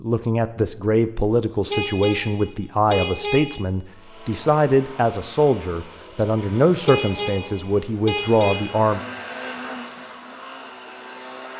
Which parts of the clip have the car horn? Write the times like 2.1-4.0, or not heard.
1.7-3.6, 6.8-8.8.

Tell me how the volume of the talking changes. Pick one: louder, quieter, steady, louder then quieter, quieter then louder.
steady.